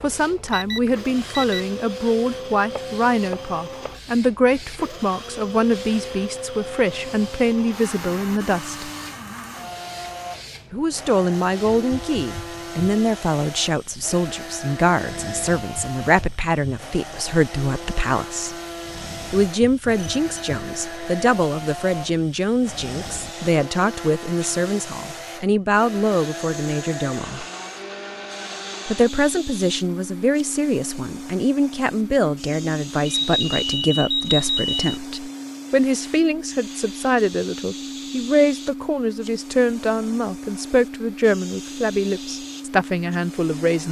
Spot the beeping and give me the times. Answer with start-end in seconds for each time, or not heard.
0.5-1.6, 19.9-20.6, 33.0-35.0.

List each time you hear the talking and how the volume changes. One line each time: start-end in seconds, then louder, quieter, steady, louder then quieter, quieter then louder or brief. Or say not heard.
0.0-8.9 steady
10.7-18.6 steady
19.3-27.4 steady
28.9-43.8 steady.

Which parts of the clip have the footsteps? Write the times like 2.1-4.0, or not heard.
not heard.